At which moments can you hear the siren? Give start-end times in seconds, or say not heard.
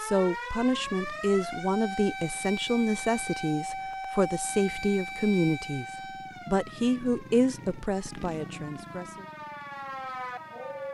0.0-10.9.